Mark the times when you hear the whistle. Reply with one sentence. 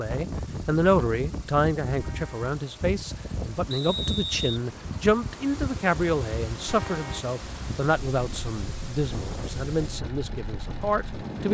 The whistle can be heard from 3.7 to 4.6 s.